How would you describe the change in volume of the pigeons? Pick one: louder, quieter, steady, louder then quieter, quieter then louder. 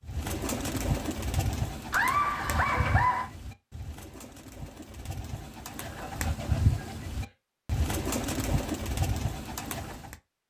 quieter then louder.